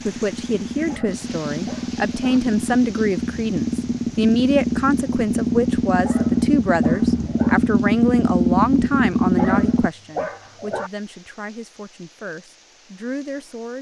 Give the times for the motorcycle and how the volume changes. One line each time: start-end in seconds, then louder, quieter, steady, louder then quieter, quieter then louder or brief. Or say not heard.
0.0-9.9 louder.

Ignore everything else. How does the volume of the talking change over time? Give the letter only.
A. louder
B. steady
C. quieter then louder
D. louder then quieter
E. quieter
E.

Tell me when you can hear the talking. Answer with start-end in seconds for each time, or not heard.
0.1-13.7.